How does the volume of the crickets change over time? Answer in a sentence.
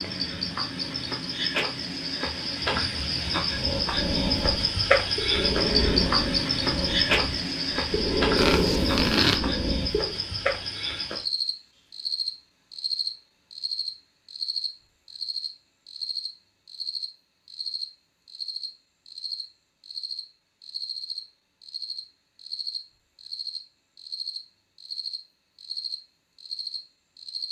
The volume of the crickets goes down.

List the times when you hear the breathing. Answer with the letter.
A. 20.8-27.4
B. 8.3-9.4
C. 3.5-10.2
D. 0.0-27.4
C.